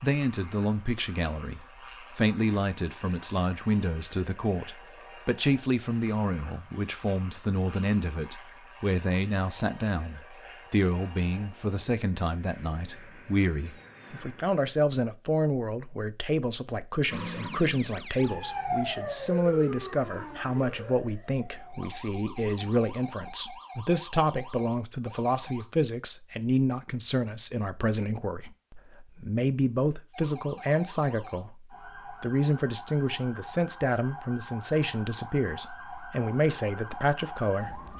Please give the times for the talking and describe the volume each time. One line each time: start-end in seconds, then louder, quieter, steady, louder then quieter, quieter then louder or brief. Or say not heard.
0.0-37.8 steady.